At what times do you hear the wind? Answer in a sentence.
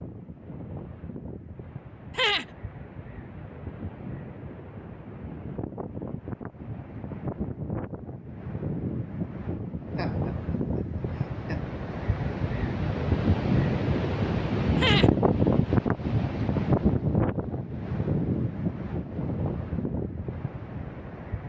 The wind can be heard from 0.0 to 21.4 s.